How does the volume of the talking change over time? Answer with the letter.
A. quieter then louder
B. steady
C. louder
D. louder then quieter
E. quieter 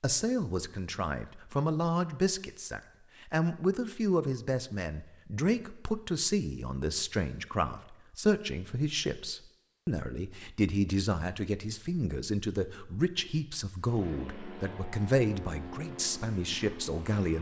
B.